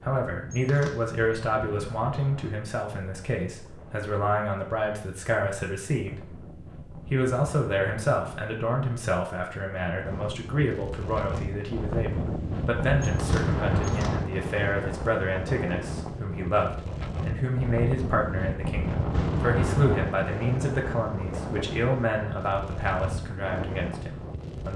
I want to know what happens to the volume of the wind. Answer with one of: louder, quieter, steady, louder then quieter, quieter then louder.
louder.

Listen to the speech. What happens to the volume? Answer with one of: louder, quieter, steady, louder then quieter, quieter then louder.
steady.